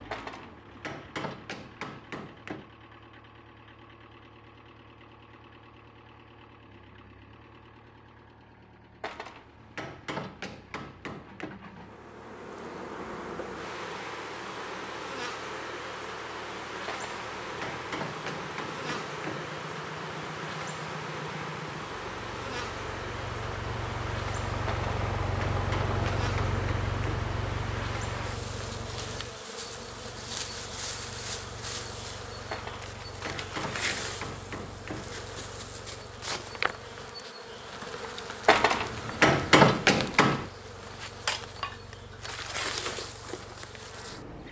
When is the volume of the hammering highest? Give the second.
40 s.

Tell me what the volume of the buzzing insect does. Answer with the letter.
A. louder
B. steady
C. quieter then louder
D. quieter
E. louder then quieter
B.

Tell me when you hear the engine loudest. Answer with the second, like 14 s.
26 s.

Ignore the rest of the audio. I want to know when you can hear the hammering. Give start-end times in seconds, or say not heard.
0.1-2.7, 9.0-11.6, 16.9-19.6, 24.6-27.3, 32.5-35.1, 38.5-40.5.